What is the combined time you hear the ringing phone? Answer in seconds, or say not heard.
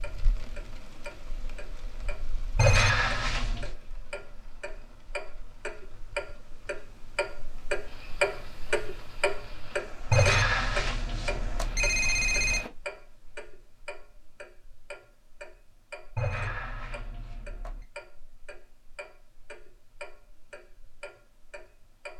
5 s.